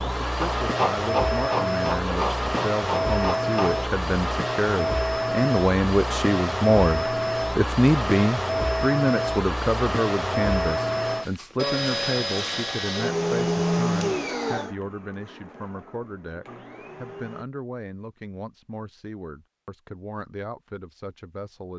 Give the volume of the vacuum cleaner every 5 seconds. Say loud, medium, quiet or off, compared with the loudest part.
loud, loud, loud, quiet, off.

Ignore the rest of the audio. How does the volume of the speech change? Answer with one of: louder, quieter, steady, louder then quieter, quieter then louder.
louder then quieter.